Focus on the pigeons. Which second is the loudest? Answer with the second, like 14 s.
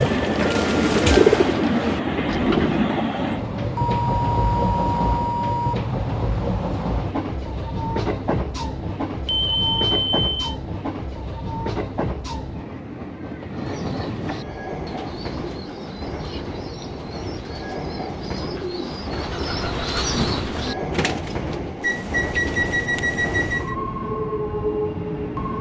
1 s.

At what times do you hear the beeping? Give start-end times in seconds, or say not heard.
3.8-5.8, 9.2-10.5, 21.8-23.8.